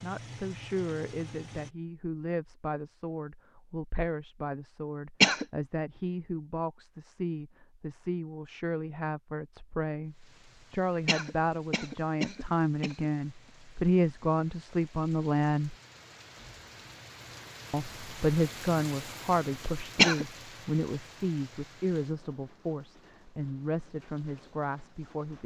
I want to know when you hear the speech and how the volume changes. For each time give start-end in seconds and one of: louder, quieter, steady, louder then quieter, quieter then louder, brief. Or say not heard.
0.0-15.8 louder
17.7-25.4 quieter.